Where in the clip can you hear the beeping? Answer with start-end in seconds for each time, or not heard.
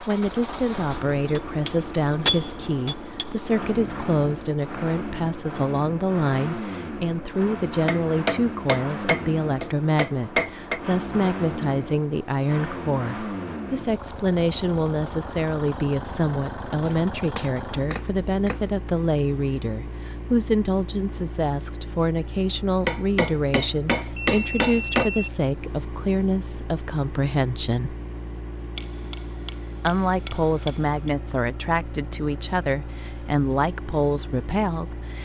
24.1-25.3.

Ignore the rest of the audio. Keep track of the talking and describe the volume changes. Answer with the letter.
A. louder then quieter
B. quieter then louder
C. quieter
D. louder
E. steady
E.